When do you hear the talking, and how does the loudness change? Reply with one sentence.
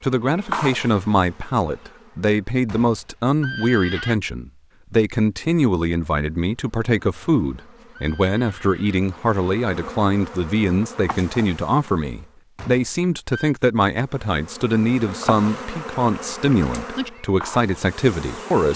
The talking can be heard from 0.0 to 18.7 s, at a steady volume.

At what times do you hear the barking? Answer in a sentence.
The barking can't be heard in this clip.